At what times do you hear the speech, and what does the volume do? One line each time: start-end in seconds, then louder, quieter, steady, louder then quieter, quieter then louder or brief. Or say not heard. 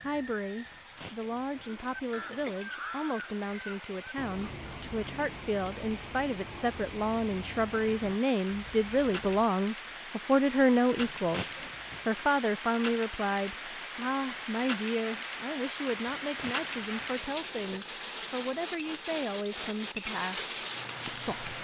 0.0-21.5 louder then quieter.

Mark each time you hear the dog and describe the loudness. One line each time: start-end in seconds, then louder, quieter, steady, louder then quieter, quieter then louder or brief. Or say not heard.
not heard.